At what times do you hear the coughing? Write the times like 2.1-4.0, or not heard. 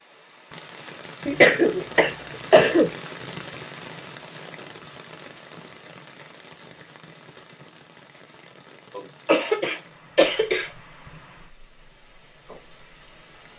1.2-2.9, 8.9-10.7.